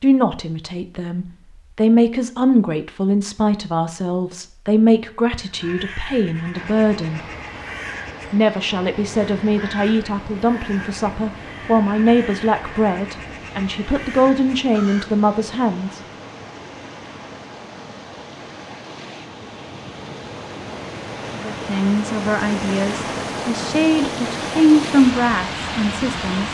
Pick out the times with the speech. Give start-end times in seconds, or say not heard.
0.0-7.2, 8.3-16.0, 21.4-26.4.